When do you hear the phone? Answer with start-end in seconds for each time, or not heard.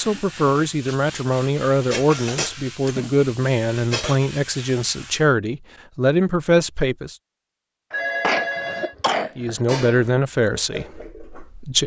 7.9-8.9.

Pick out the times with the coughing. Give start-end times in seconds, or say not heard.
2.1-3.0, 7.9-9.6.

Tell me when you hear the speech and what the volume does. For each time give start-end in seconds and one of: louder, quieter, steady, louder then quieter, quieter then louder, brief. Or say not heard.
0.0-7.2 steady
9.3-11.8 brief.